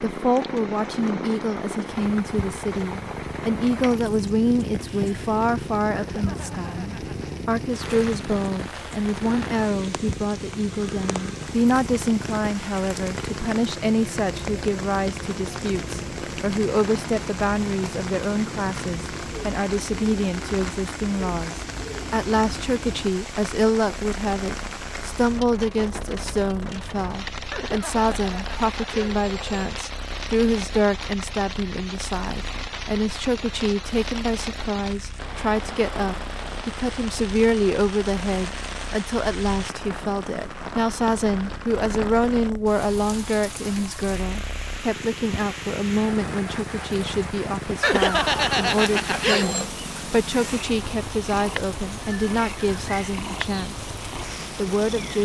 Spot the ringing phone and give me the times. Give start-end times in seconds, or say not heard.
6.0-7.3, 27.5-29.8, 47.8-49.7.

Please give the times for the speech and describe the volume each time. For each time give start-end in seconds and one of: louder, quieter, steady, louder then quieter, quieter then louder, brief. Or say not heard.
0.0-53.9 steady
54.5-55.1 brief.